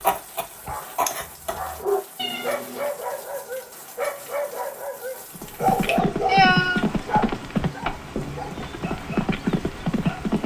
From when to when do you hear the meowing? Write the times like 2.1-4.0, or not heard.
2.1-2.9, 5.7-6.8.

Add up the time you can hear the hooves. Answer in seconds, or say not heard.
5 s.